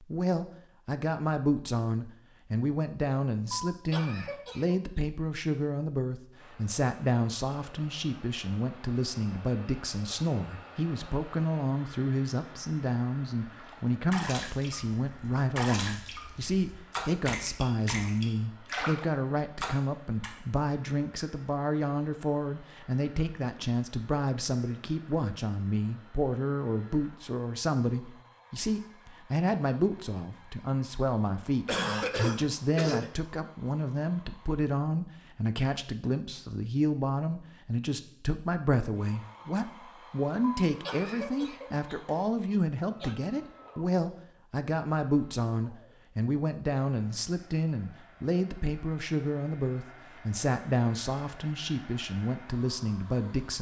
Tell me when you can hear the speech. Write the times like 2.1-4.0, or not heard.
0.0-53.5.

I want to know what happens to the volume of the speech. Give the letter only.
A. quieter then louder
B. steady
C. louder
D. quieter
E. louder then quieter
B.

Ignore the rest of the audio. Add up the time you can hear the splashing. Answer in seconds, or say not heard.
7 s.